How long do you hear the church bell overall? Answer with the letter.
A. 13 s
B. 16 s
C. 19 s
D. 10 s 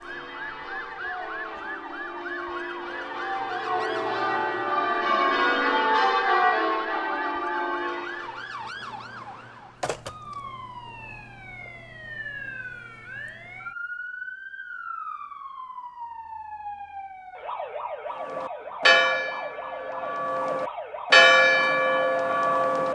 A.